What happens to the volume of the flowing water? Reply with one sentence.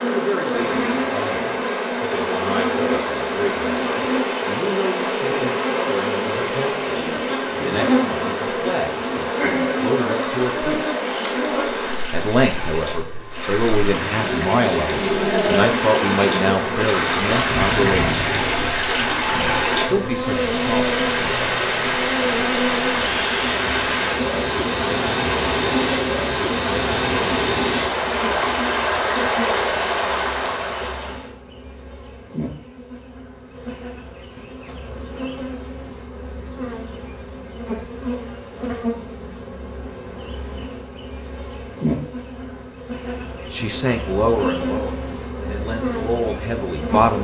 The volume of the flowing water goes up.